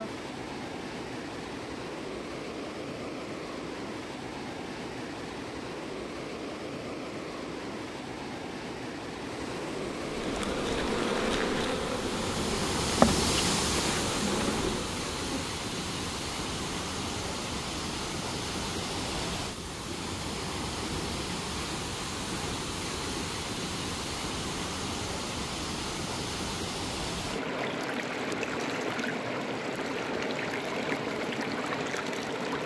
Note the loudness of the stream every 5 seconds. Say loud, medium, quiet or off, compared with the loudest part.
medium, medium, loud, loud, loud, loud, loud.